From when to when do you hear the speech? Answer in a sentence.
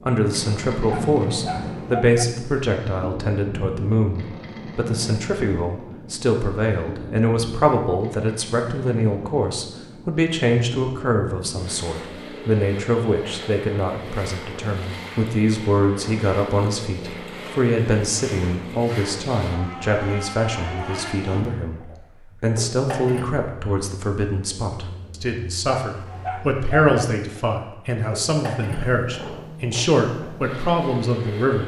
The speech can be heard from 0.1 to 31.6 s.